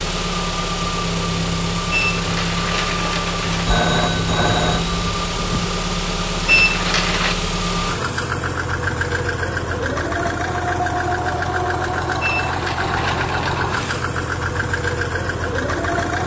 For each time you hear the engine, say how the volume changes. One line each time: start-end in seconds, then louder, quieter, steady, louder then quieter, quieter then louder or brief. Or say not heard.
0.0-16.2 steady.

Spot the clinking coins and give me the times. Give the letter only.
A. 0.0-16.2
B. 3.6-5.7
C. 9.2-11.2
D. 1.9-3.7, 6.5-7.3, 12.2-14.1
D.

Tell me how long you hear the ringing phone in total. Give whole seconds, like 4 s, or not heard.
2 s.